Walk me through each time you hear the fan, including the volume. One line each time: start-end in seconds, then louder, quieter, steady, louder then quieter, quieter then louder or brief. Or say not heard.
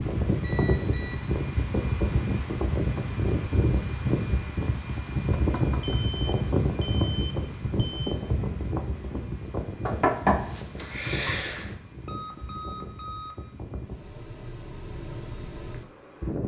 0.0-16.4 quieter.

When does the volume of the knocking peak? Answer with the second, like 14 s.
10 s.